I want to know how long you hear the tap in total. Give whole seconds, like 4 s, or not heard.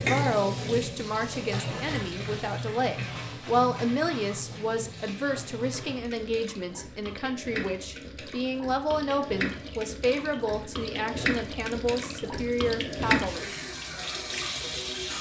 15 s.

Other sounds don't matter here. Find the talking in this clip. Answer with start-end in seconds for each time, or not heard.
0.0-13.5.